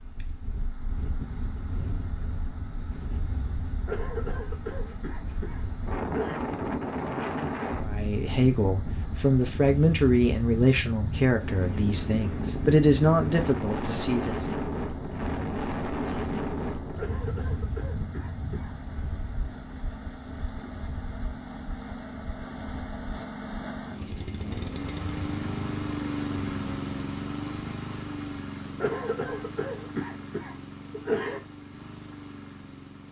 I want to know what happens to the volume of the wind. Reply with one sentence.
The loudness of the wind goes up, then down.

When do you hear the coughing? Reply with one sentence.
The coughing can be heard from 3.9 to 6.5 s, from 16.9 to 18.7 s and from 28.8 to 31.4 s.